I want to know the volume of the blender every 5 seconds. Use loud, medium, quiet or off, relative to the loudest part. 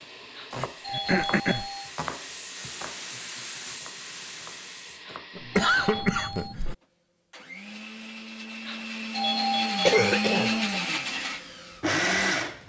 quiet, medium, loud.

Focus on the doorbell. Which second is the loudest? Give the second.
9 s.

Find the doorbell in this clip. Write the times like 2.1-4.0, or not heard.
0.3-1.9, 5.0-6.5, 8.7-10.8.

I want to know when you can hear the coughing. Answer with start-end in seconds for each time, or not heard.
0.6-1.7, 5.3-6.8, 9.8-10.6.